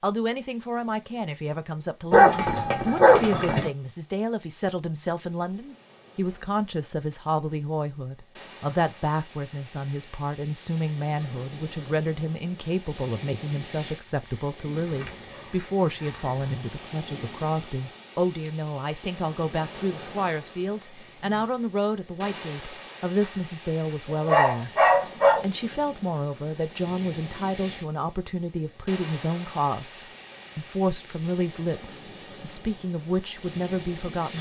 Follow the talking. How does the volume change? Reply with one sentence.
The volume of the talking stays about the same.